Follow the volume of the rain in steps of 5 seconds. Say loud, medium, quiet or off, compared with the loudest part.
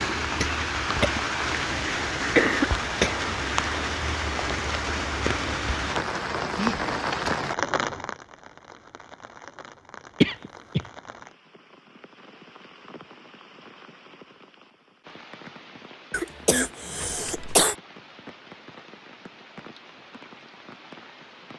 loud, loud, quiet, quiet, quiet.